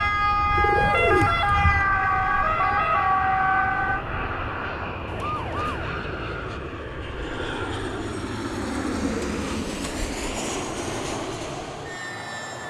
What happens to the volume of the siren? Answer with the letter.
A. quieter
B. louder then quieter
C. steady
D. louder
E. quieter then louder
A.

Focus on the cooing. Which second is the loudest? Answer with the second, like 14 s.
1 s.